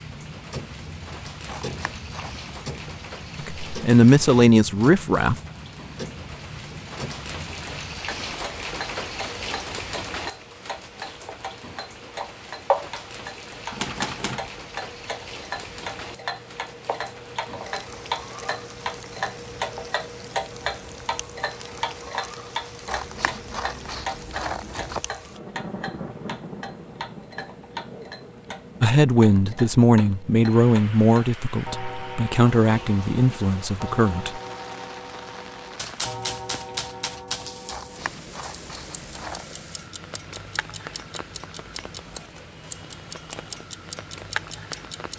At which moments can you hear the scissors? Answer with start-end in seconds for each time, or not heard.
1.4-2.4, 22.9-25.0, 37.6-39.5.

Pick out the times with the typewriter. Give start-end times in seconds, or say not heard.
13.7-14.5, 35.8-37.5.